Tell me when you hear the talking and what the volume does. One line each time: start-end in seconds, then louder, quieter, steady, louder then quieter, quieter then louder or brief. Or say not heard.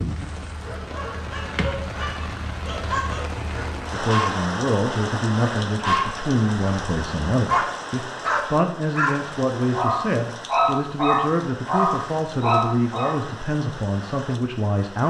3.9-15.0 steady.